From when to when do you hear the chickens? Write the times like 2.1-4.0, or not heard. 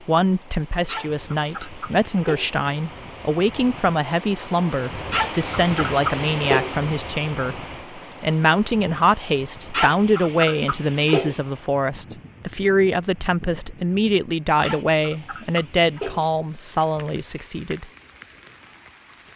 0.8-2.5, 5.1-6.8, 9.7-11.4, 14.6-16.2.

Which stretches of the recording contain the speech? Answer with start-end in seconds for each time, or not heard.
0.1-17.9.